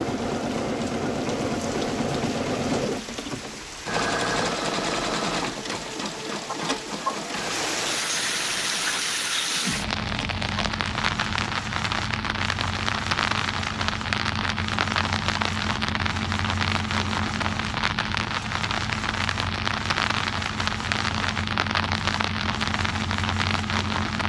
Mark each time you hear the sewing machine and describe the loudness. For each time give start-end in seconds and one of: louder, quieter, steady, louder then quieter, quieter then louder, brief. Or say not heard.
0.0-24.2 quieter.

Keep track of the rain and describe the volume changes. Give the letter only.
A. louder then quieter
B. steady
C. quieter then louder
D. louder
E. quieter
D.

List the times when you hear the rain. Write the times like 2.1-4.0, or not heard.
0.0-24.2.